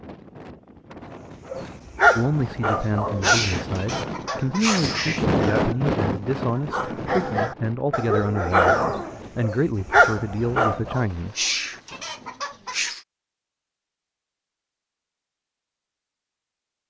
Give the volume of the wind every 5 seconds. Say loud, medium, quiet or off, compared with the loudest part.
medium, loud, quiet, off.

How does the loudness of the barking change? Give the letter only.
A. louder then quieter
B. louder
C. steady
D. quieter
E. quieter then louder
E.